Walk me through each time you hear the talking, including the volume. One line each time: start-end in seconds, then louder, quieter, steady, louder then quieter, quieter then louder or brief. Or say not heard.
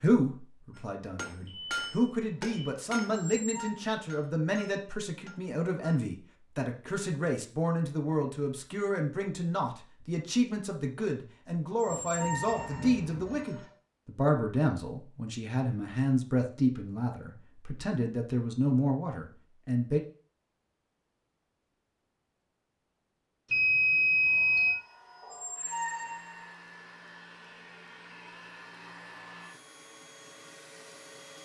0.0-20.0 steady.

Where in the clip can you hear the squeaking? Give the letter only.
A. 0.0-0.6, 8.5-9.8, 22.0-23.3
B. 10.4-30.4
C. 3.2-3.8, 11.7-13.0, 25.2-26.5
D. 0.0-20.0
C.